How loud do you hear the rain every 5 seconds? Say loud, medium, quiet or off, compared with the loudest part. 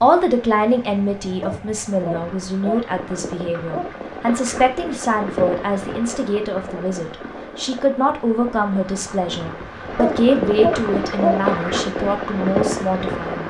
medium, medium, loud.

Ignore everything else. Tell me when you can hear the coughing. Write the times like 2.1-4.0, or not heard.
not heard.